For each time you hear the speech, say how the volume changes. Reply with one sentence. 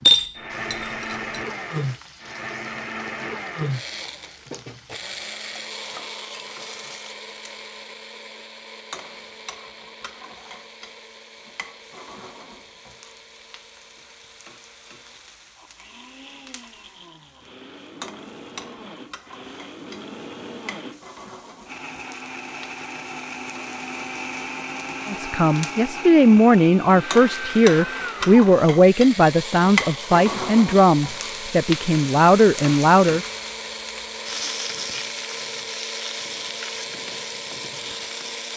You can hear the speech from 25.1 to 33.2 s, at a steady volume.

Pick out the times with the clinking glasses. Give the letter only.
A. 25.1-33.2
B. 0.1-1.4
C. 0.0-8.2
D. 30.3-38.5
B.